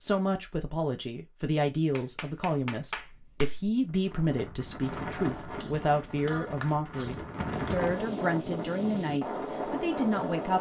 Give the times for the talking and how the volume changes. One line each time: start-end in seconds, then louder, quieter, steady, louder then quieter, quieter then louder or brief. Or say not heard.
0.0-10.5 steady.